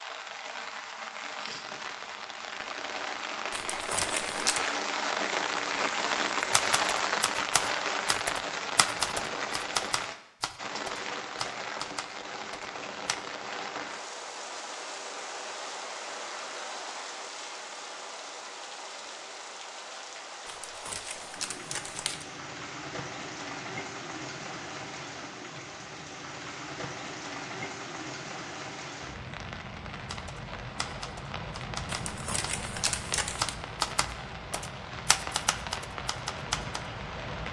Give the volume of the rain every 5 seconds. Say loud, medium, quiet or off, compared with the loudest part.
medium, loud, medium, medium, medium, medium, medium, medium.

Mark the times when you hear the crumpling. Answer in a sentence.
The crumpling can be heard from 3.5 to 4.6 s, from 20.4 to 22.2 s and from 31.9 to 33.5 s.